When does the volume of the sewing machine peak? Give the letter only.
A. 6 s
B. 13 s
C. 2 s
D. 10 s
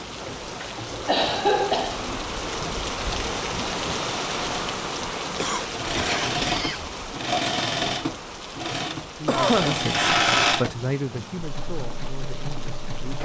D.